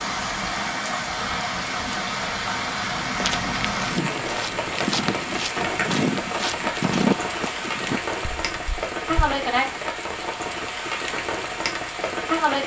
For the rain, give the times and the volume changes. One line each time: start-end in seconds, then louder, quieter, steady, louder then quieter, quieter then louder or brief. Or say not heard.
0.0-12.6 steady.